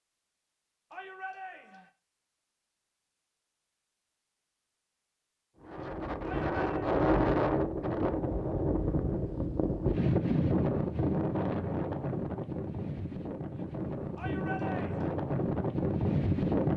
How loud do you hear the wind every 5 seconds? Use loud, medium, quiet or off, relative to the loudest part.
off, loud, loud, loud.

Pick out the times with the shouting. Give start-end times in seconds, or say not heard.
0.9-1.9, 6.2-6.9, 14.2-15.2.